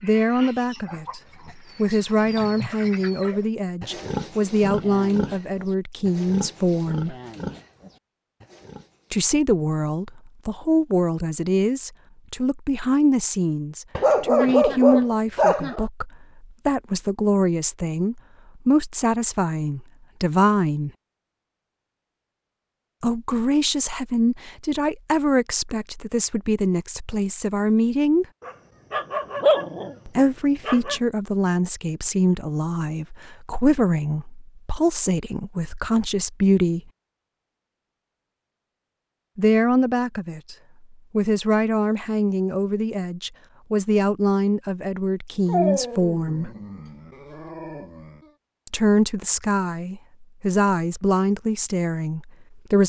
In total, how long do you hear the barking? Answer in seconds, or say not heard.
7 s.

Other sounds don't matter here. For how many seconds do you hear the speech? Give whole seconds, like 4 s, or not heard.
42 s.